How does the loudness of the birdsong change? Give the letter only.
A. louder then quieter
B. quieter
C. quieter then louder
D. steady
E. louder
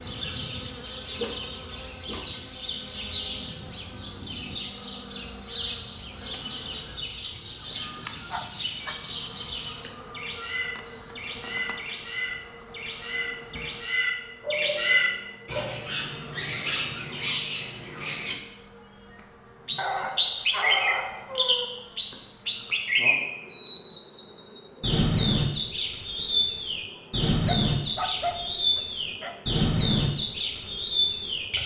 E.